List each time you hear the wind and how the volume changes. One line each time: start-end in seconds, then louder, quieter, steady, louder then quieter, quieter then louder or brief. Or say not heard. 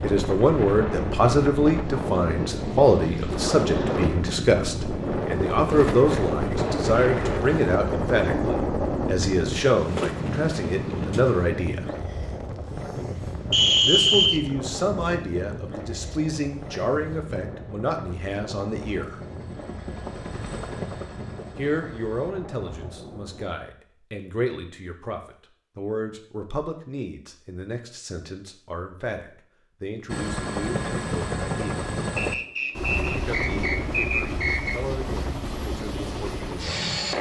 0.0-23.5 quieter.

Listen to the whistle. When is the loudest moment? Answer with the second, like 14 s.
14 s.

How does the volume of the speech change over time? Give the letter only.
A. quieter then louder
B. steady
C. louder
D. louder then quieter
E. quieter
E.